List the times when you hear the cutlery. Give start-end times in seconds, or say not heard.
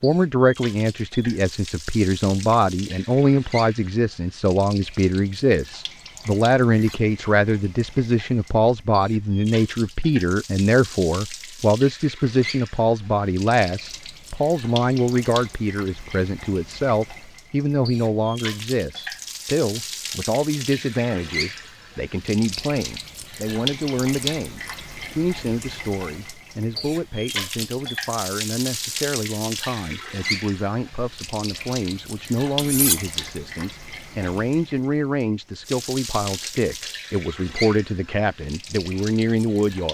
6.6-7.0, 32.5-33.0.